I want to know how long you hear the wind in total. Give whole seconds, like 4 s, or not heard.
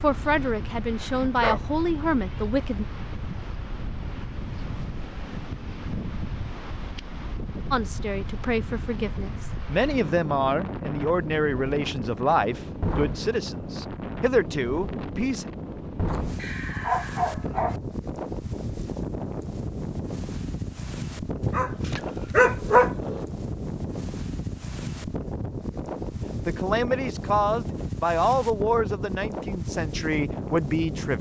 31 s.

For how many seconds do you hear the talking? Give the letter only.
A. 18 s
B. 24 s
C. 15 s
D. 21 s
C.